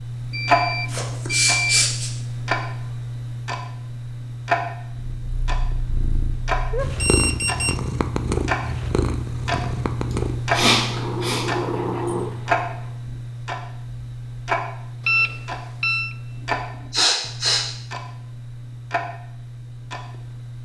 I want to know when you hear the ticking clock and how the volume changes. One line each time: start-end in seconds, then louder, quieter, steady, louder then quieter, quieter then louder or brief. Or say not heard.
0.0-20.5 quieter.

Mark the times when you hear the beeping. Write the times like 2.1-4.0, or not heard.
0.3-1.9, 7.0-7.8, 15.1-16.1.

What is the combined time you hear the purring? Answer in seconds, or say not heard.
8 s.